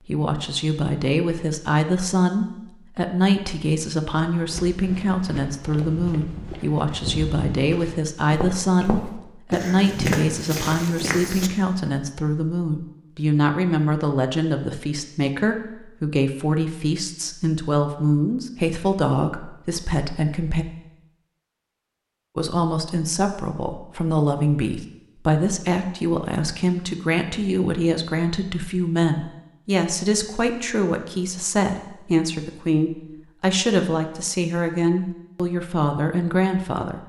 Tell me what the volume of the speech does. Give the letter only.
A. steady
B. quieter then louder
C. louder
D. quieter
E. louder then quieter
A.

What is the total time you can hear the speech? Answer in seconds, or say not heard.
35 s.